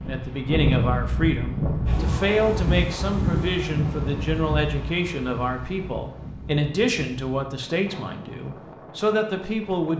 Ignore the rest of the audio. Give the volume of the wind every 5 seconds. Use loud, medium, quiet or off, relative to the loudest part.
loud, quiet.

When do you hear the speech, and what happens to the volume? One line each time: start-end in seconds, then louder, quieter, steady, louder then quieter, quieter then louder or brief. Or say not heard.
0.1-9.9 steady.